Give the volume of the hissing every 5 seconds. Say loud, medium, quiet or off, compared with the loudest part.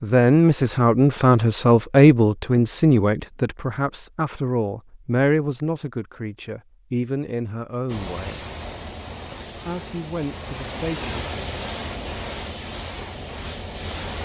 off, loud, loud.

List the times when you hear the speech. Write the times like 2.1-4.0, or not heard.
0.0-8.4, 9.3-11.3.